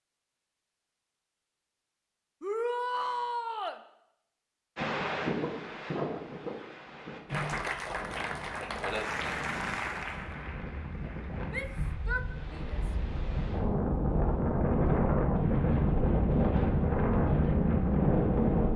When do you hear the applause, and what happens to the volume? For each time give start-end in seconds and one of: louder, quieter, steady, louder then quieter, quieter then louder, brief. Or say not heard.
7.2-12.0 quieter.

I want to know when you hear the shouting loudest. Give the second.
3 s.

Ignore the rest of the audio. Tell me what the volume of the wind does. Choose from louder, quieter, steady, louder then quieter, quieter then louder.
quieter then louder.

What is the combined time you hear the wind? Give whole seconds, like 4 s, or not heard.
14 s.